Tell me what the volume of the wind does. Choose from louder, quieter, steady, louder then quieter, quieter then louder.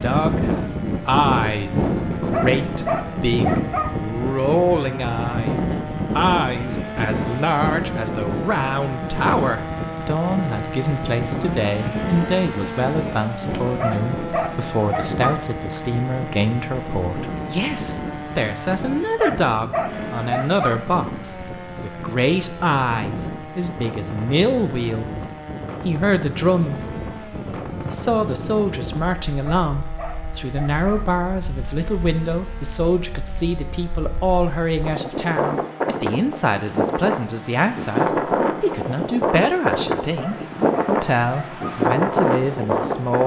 quieter then louder.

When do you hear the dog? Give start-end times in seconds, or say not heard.
2.3-3.9, 13.8-15.3, 19.1-20.8, 29.4-31.0, 40.1-41.8.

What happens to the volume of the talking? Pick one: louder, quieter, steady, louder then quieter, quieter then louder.
steady.